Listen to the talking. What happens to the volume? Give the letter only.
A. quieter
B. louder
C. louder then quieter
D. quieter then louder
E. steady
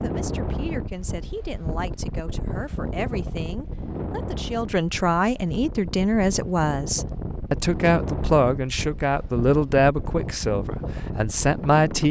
B.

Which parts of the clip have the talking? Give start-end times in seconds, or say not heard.
0.0-12.0.